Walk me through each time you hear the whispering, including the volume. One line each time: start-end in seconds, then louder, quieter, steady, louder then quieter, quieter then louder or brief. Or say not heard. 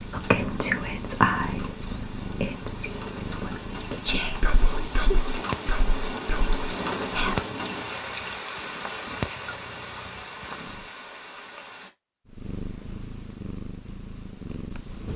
0.1-7.4 quieter.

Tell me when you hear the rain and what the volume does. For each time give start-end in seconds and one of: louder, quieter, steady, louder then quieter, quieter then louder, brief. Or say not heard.
0.0-11.9 louder then quieter.